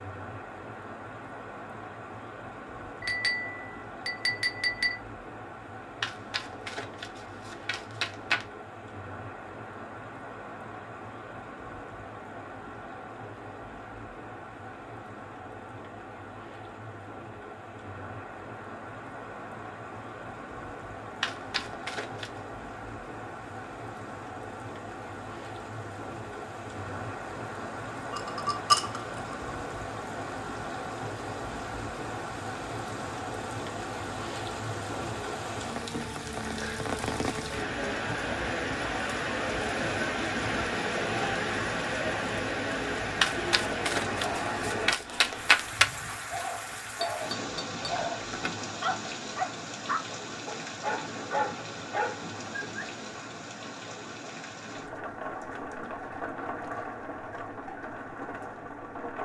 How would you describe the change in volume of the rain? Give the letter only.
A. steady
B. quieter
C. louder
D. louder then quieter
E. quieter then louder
D.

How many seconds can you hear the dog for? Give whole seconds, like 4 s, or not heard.
7 s.